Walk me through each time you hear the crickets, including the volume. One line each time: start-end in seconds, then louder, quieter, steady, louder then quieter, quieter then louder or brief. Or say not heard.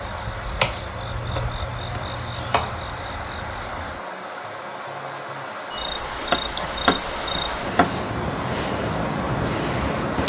0.0-10.2 louder.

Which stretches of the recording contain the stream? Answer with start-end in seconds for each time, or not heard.
0.0-10.2.